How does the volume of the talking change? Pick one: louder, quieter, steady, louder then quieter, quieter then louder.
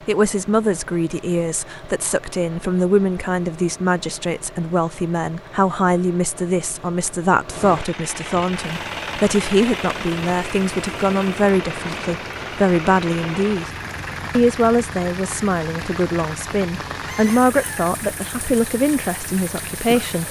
steady.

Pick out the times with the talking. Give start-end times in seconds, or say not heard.
0.1-13.7, 14.3-20.2.